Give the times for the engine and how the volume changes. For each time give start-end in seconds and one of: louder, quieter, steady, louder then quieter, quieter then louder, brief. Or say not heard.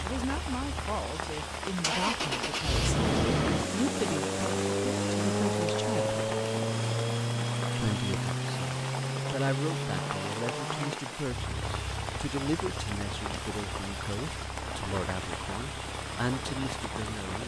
0.0-17.4 quieter.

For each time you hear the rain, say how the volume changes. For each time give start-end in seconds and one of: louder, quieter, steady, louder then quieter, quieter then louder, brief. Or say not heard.
0.0-17.4 steady.